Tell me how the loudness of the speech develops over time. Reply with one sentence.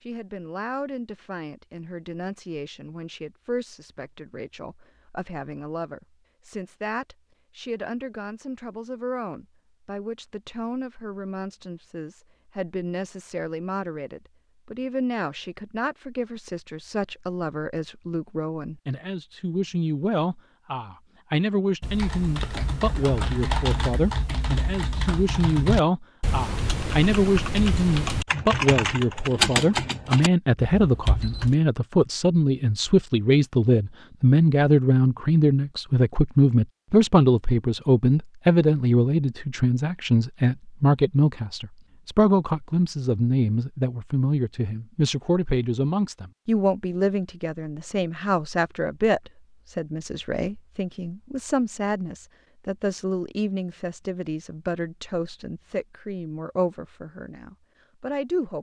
The loudness of the speech goes up, then down.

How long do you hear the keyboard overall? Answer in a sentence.
The keyboard can be heard for 10 seconds in total.